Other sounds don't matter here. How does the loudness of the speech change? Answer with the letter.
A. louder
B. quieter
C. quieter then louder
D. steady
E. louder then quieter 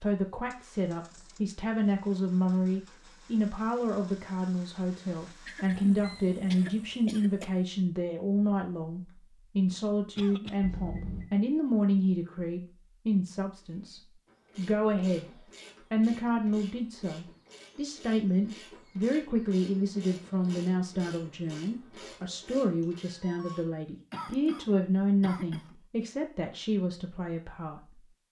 D.